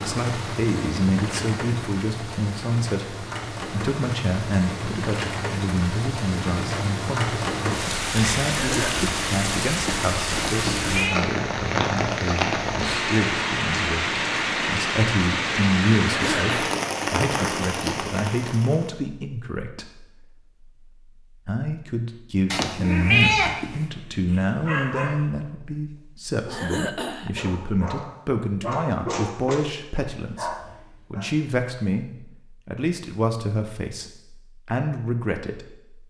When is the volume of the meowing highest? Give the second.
23 s.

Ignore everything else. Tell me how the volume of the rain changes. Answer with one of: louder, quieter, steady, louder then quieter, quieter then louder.
louder.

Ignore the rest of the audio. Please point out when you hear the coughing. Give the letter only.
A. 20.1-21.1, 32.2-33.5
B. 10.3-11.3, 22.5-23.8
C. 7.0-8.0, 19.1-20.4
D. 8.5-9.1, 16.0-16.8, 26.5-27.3
D.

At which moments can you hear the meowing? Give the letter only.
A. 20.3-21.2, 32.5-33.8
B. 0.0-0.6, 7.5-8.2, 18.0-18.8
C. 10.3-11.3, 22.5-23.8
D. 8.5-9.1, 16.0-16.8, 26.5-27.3
C.